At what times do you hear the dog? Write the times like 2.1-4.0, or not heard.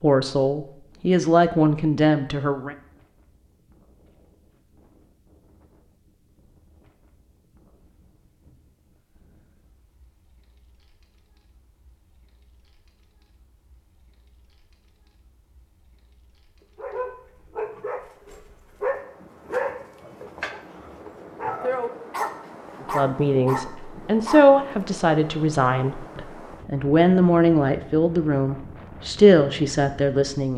16.8-24.6.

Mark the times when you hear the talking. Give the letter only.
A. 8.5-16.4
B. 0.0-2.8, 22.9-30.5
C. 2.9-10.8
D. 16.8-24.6
B.